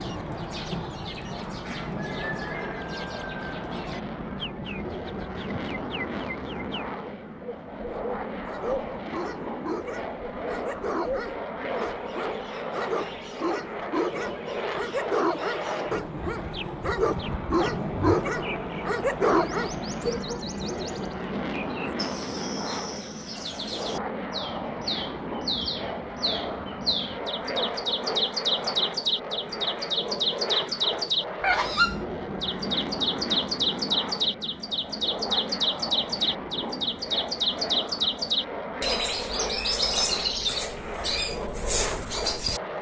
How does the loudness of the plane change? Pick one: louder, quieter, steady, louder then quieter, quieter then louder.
steady.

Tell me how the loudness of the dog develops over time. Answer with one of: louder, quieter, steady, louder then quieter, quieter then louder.
louder.